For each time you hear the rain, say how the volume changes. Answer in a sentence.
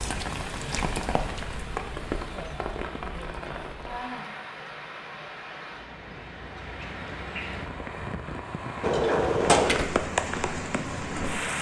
The rain can be heard from 0.0 to 11.5 s, getting quieter then louder.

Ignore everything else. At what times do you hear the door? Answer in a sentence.
You can hear the door from 8.8 to 9.8 s.